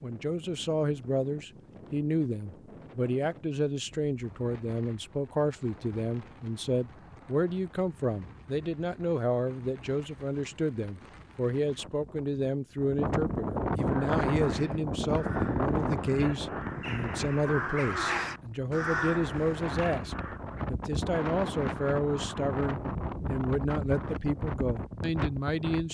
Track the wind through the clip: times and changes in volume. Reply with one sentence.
You can hear the wind from 0.0 to 25.8 s, getting louder.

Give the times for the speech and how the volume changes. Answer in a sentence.
The speech can be heard from 0.0 to 25.8 s, at a steady volume.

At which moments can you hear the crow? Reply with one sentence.
You can hear the crow from 13.8 to 20.4 s.